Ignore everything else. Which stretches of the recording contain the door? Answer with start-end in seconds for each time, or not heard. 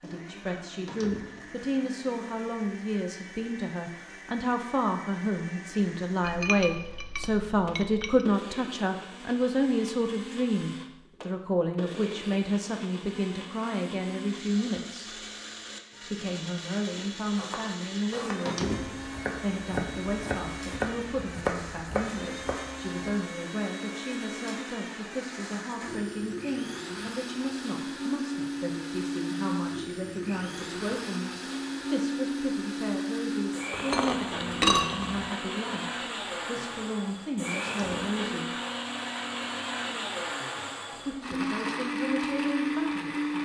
0.8-1.5, 18.4-19.1, 37.6-38.2.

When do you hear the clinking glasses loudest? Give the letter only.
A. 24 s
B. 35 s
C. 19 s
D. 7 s
B.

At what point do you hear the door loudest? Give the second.
19 s.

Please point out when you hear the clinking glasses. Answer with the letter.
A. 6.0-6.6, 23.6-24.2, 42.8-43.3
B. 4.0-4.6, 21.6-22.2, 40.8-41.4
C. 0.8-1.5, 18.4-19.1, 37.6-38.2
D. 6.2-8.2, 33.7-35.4
D.